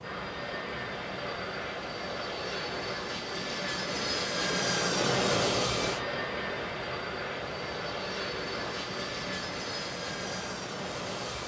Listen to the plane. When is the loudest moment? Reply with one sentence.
The loudest moment of the plane is at 5 seconds.